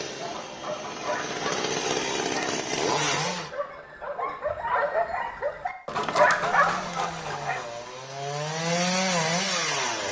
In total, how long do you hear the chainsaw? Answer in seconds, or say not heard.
7 s.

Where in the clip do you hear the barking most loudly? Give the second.
6 s.